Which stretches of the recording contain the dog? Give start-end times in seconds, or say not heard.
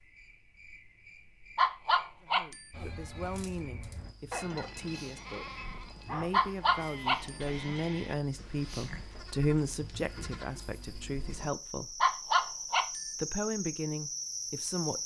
1.6-2.6, 6.3-7.4, 12.0-13.1.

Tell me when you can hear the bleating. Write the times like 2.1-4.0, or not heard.
2.7-10.4.